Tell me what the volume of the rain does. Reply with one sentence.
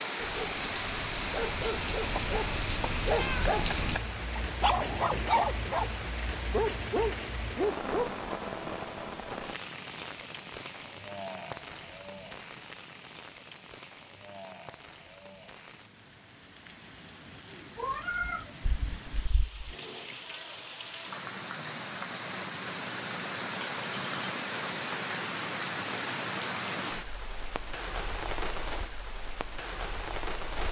The volume of the rain goes down, then up.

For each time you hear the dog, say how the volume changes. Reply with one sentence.
You can hear the dog from 0.1 to 8.1 s, getting louder.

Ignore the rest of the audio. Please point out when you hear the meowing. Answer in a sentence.
The meowing can be heard from 3.1 to 4.0 s and from 17.8 to 19.8 s.